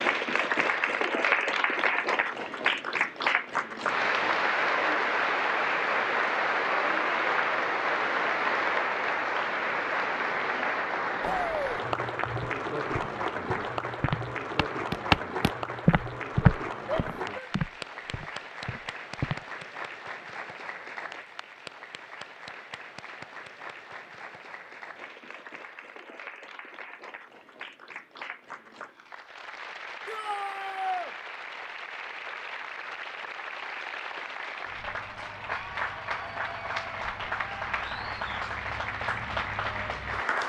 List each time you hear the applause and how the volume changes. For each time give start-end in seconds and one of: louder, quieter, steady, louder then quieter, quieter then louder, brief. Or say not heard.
0.0-40.4 quieter then louder.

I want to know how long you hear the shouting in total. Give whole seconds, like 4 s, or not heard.
2 s.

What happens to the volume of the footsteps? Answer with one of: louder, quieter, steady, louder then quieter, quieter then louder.
louder then quieter.